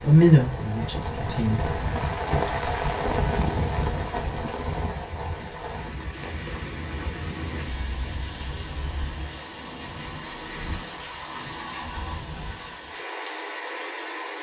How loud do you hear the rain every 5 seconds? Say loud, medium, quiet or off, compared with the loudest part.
loud, medium, medium.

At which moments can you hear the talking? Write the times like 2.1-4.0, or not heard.
0.0-1.6.